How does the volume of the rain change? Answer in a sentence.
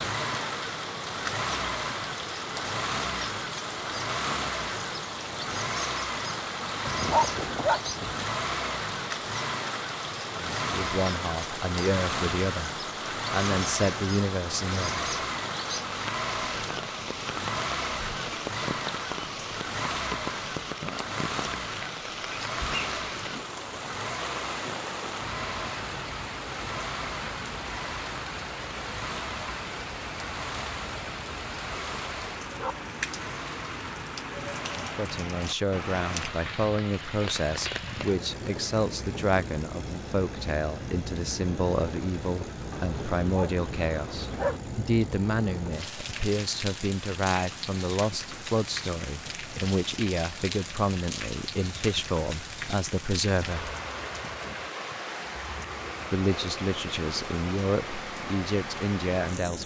The volume of the rain stays about the same.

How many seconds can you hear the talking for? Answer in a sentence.
The talking can be heard for 27 seconds in total.